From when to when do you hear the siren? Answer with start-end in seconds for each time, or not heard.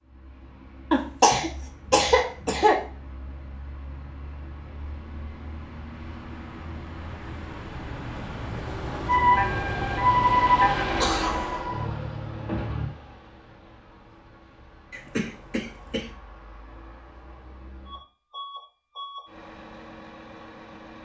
9.1-12.9.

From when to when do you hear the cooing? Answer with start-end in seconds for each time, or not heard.
not heard.